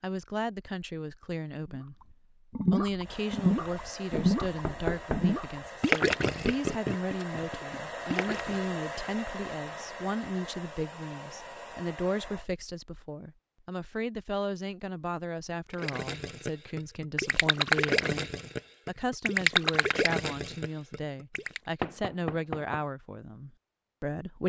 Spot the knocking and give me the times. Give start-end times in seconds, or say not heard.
4.2-5.3, 21.8-22.8.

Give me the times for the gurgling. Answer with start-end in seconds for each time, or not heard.
1.6-8.6, 15.7-21.6.